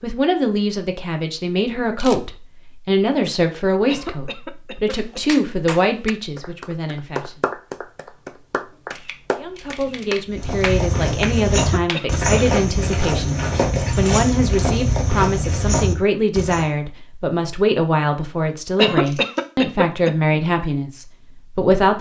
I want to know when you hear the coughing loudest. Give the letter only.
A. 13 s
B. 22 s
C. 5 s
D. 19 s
D.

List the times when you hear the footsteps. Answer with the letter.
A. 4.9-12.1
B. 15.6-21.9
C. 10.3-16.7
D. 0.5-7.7
C.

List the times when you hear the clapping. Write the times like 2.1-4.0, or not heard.
4.9-12.1.